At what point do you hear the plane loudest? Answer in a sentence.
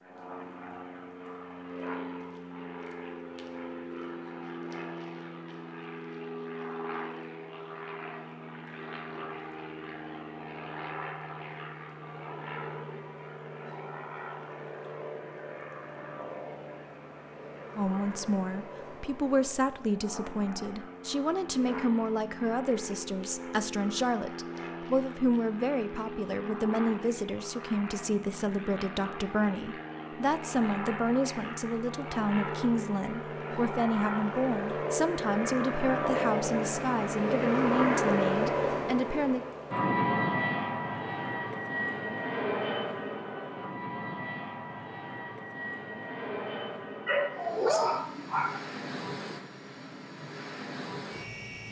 The loudest moment of the plane is at 38 seconds.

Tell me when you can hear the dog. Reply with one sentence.
The dog can be heard from 47.0 to 48.6 s.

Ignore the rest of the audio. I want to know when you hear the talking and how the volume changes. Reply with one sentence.
You can hear the talking from 17.8 to 39.5 s, at a steady volume.